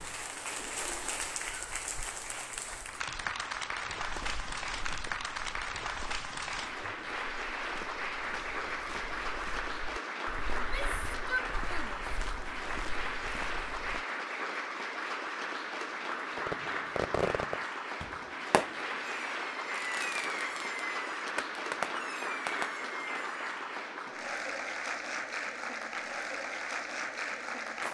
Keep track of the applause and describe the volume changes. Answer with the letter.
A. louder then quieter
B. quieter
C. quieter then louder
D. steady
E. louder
D.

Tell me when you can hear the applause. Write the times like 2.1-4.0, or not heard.
0.0-27.9.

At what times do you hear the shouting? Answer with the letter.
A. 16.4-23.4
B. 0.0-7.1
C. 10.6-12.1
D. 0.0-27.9
C.